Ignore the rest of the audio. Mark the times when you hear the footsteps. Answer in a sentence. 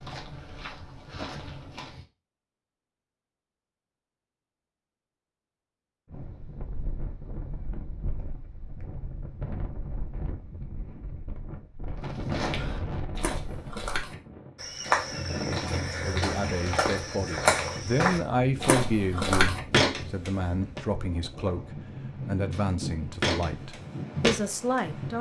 The footsteps can be heard from 0.0 to 2.0 s, from 12.0 to 20.8 s and from 22.5 to 24.9 s.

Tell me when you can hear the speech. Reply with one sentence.
You can hear the speech from 16.0 to 25.1 s.